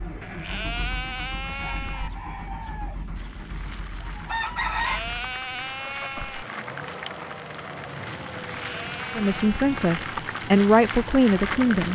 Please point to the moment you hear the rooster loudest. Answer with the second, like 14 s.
5 s.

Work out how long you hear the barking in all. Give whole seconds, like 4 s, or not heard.
not heard.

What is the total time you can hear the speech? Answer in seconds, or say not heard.
3 s.